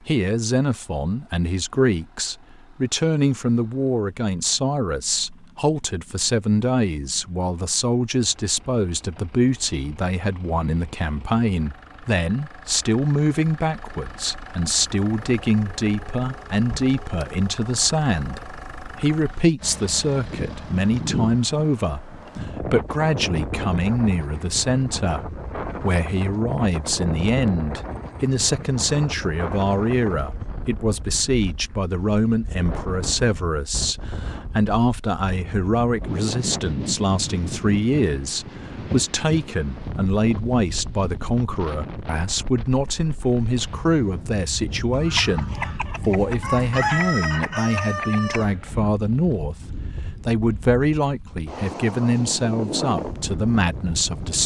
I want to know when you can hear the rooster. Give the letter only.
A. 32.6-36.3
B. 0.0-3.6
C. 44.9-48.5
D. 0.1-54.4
C.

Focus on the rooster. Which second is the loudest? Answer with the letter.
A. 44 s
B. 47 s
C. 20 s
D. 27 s
B.